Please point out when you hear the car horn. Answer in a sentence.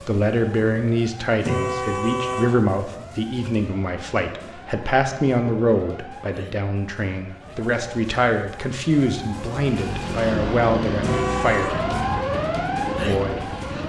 The car horn can be heard from 1.4 to 2.5 s and from 11.0 to 11.8 s.